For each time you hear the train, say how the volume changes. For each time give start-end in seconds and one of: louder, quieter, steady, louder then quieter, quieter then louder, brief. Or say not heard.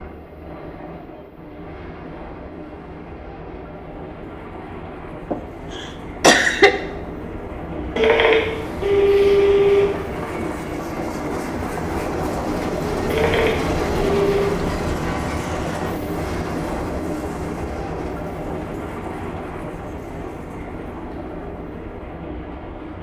0.0-22.9 louder then quieter.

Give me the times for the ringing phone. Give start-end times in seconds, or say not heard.
8.0-9.9, 13.1-14.6.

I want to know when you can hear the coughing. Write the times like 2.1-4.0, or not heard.
5.3-6.7.